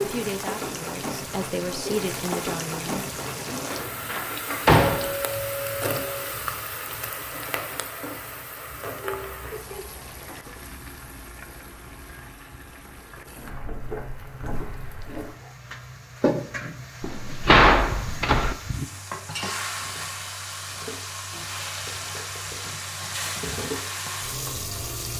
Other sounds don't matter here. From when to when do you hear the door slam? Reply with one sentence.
You can hear the door slam from 3.5 to 5.2 s and from 17.0 to 18.6 s.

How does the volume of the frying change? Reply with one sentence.
The volume of the frying goes down, then up.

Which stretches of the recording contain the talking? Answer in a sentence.
You can hear the talking from 0.0 to 3.0 s.